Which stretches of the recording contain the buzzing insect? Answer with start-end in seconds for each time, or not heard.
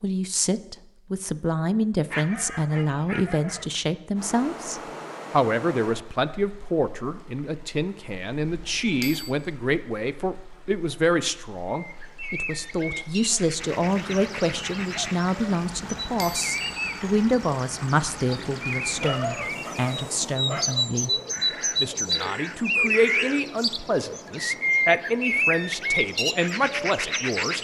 not heard.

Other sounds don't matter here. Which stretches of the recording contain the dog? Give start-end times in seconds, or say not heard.
2.1-3.7, 18.9-20.9.